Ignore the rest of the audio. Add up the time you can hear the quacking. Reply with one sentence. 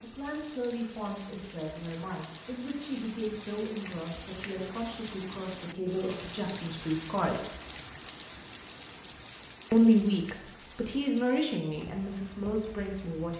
You can't hear the quacking here.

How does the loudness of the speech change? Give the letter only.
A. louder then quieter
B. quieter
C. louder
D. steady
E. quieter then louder
A.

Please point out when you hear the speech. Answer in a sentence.
The speech can be heard from 0.0 to 7.5 s and from 9.7 to 13.3 s.